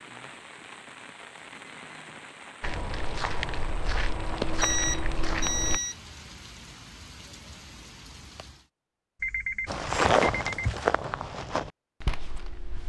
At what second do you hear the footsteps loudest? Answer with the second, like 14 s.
10 s.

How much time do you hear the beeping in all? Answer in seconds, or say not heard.
4 s.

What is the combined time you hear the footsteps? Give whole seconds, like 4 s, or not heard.
6 s.